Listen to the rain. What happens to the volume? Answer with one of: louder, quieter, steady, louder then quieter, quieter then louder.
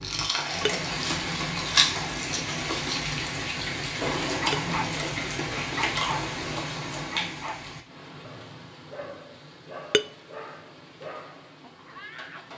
quieter.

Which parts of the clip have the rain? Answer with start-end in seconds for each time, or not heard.
0.0-12.5.